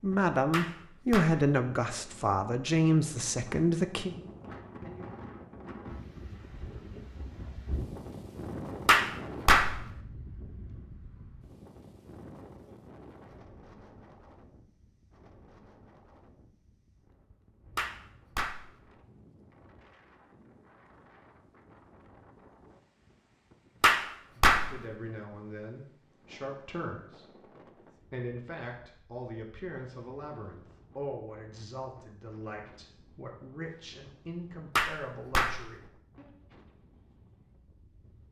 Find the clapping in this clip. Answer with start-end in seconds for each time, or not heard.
0.5-1.4, 8.8-9.9, 17.8-18.8, 23.8-24.9, 34.8-35.8.